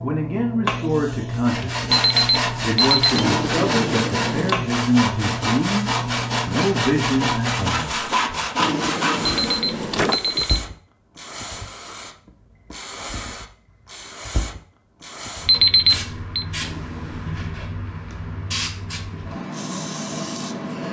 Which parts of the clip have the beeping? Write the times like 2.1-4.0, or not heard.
1.9-3.2, 9.3-10.7, 15.4-16.4.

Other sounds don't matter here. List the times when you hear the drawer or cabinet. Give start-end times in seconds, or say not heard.
3.1-4.5, 8.6-10.5, 16.6-17.4.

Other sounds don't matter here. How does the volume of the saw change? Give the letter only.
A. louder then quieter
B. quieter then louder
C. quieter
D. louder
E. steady
E.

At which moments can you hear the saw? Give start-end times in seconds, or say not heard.
1.3-9.6.